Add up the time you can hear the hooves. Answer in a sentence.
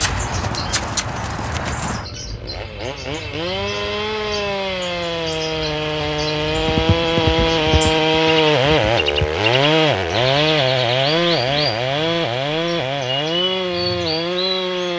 The hooves can be heard for 5 seconds in total.